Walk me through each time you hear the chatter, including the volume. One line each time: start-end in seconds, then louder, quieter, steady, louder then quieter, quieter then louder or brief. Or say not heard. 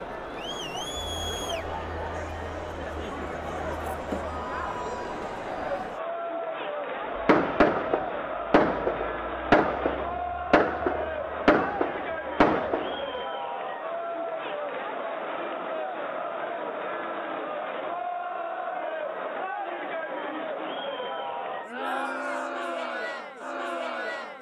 0.0-24.3 steady.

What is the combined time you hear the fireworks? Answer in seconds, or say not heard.
6 s.